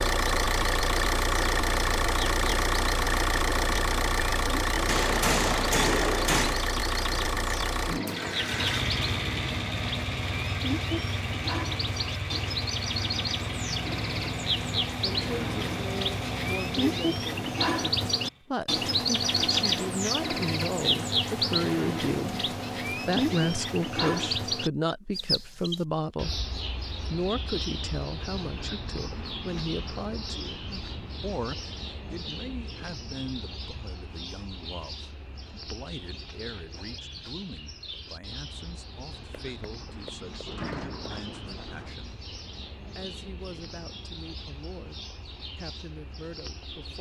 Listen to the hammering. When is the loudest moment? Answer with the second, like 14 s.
6 s.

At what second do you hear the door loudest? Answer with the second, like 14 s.
41 s.